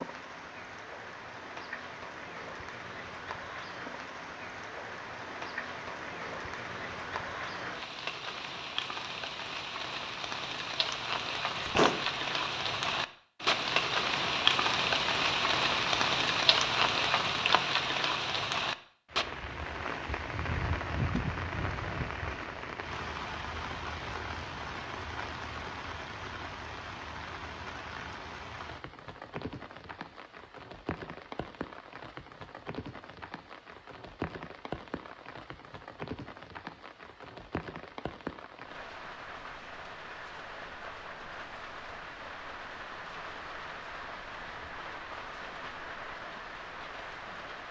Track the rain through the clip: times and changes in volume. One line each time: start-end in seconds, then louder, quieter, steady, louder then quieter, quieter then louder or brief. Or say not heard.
0.0-47.6 louder then quieter.